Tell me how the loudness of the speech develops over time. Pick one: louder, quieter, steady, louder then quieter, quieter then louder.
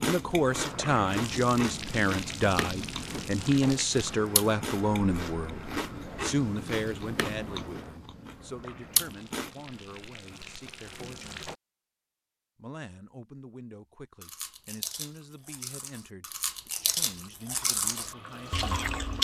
quieter.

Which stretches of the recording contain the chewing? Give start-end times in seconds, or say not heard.
0.0-9.5, 14.2-19.1.